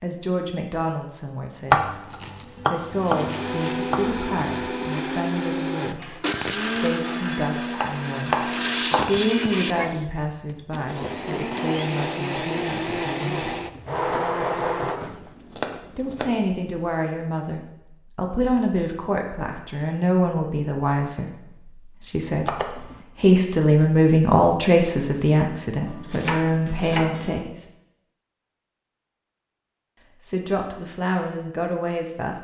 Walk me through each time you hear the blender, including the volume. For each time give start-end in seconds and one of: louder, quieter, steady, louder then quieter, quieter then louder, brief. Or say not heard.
2.9-15.3 steady.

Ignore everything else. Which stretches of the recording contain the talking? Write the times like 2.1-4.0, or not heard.
0.0-13.6, 15.9-22.6, 23.2-27.6, 30.2-32.3.